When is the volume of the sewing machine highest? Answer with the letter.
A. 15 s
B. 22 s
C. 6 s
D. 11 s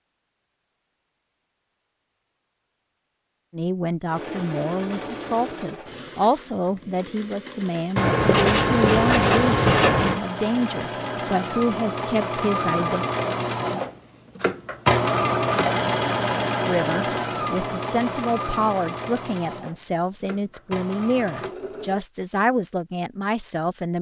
A.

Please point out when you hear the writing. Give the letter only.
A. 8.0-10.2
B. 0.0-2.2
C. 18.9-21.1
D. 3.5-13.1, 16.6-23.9
A.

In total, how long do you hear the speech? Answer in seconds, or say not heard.
17 s.